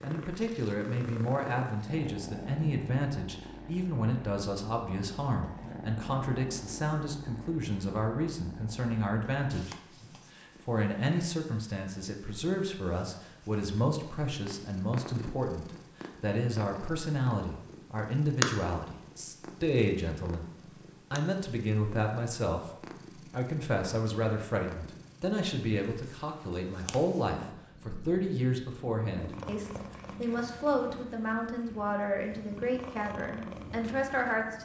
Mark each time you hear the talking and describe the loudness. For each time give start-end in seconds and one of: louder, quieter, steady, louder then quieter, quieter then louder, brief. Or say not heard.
0.0-9.8 steady
10.3-34.6 steady.